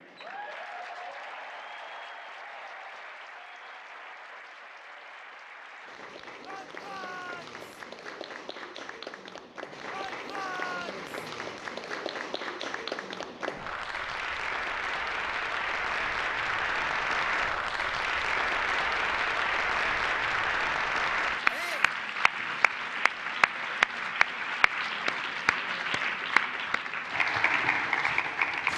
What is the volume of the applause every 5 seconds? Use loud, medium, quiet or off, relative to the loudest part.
quiet, quiet, medium, loud, loud, loud.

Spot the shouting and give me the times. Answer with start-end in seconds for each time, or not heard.
6.5-7.5, 9.9-11.1, 21.4-21.9.